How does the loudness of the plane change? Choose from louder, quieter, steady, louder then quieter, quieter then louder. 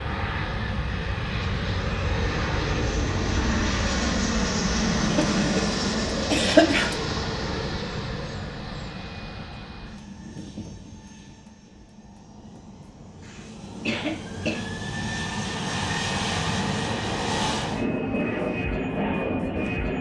quieter then louder.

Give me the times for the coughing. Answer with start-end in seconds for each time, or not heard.
5.1-5.7, 6.3-7.0, 13.2-14.7.